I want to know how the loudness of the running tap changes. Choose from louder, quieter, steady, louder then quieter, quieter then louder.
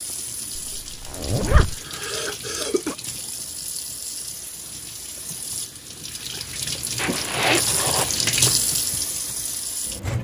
louder.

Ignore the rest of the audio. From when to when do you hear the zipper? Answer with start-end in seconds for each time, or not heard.
0.6-1.8, 7.0-8.6.